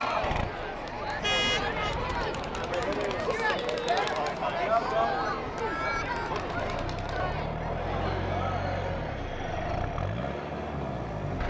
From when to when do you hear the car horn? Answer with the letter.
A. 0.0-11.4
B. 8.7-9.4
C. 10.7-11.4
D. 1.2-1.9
D.